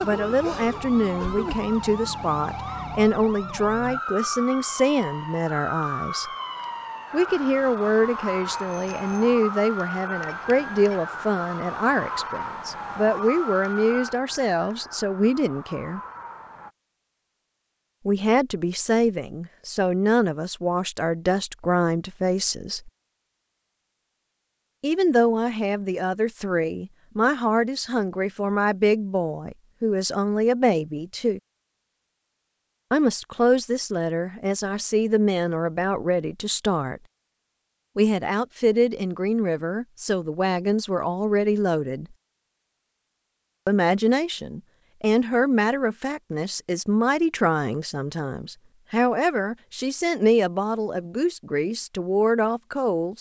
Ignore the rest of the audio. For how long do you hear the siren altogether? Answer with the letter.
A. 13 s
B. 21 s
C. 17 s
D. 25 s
C.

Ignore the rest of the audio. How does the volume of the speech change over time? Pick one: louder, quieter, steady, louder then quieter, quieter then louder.
steady.